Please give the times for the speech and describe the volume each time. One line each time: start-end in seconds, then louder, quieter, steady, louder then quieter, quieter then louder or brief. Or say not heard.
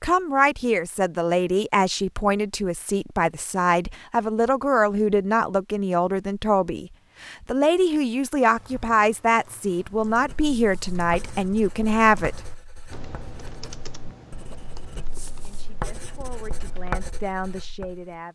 0.0-12.4 steady
15.4-18.2 brief.